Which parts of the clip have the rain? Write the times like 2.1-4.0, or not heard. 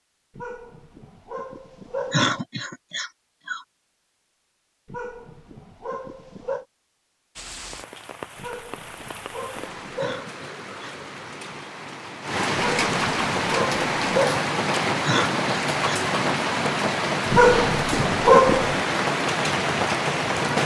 7.3-20.6.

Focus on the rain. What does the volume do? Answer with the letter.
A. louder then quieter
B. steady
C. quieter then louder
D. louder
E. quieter
D.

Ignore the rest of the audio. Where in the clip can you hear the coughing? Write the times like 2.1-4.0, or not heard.
2.1-3.6, 9.9-10.9, 15.1-16.0.